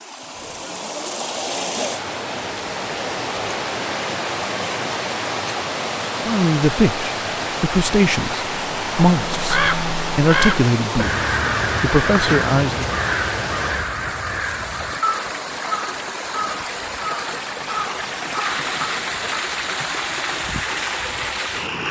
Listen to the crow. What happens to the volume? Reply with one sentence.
The loudness of the crow goes down.